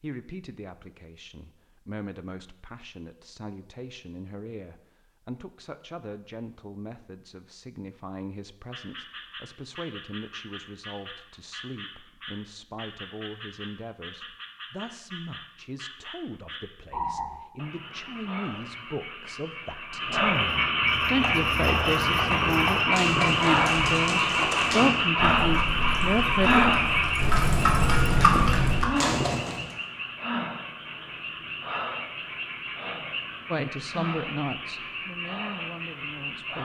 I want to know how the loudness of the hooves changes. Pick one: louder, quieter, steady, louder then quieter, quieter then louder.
louder.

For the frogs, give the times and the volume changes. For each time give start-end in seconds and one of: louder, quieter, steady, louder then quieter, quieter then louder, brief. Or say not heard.
8.7-36.6 louder then quieter.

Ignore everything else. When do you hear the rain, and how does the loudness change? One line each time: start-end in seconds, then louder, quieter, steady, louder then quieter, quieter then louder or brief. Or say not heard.
not heard.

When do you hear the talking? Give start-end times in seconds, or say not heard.
0.0-26.6, 33.5-36.6.